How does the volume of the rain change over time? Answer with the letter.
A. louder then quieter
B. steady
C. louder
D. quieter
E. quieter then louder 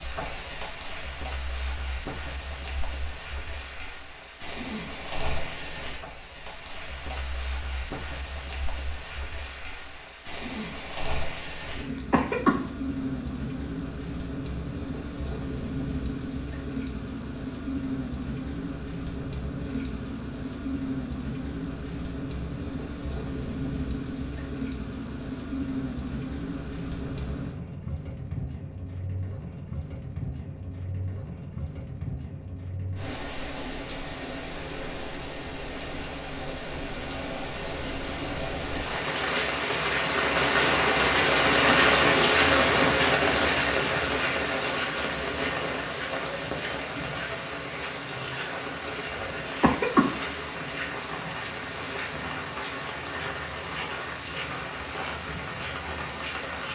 A.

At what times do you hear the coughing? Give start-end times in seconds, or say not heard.
11.3-12.7, 48.9-50.2.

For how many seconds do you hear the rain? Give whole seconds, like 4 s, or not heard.
57 s.